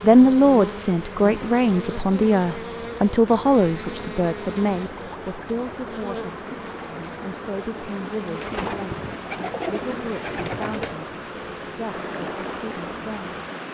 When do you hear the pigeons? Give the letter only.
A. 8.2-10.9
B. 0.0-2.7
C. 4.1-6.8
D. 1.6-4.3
A.